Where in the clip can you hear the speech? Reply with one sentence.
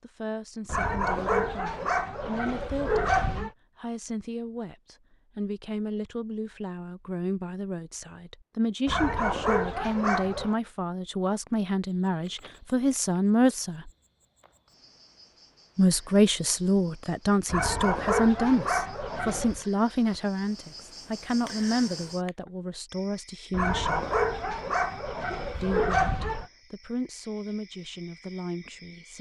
You can hear the speech from 0.0 to 13.9 s, from 15.8 to 24.1 s and from 25.6 to 29.1 s.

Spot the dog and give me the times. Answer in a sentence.
The dog can be heard from 0.7 to 3.5 s, from 8.8 to 10.6 s, from 17.4 to 19.6 s and from 23.5 to 26.5 s.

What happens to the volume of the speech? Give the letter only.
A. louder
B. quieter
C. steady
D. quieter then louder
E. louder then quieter
E.